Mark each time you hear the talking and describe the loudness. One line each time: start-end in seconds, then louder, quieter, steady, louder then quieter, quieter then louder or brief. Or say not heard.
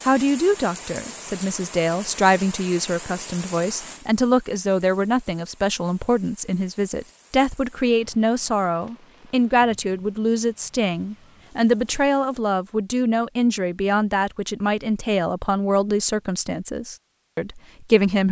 0.0-18.2 steady.